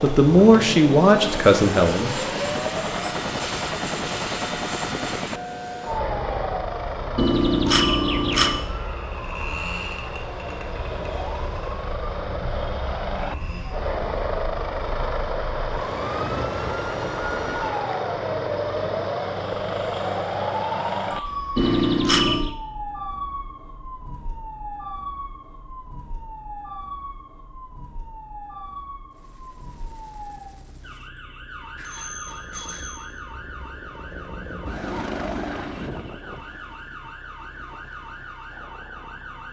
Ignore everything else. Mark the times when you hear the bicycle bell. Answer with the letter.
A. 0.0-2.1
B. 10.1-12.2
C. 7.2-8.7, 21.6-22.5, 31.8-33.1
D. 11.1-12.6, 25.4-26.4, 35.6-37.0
C.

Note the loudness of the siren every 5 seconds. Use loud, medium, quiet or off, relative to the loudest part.
loud, loud, medium, loud, loud, medium, medium, medium.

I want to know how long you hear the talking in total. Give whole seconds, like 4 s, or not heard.
2 s.